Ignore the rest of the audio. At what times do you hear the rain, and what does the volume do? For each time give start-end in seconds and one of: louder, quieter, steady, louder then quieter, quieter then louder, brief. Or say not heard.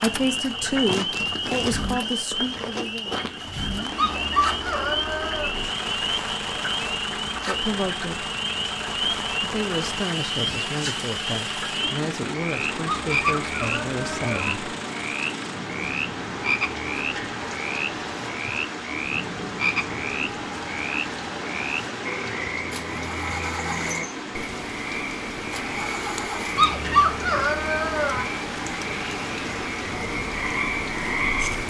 0.0-31.6 steady.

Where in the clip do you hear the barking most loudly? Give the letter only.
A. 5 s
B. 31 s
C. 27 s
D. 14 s
C.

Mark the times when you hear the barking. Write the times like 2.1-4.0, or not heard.
4.0-5.5, 12.8-14.6, 26.6-28.2.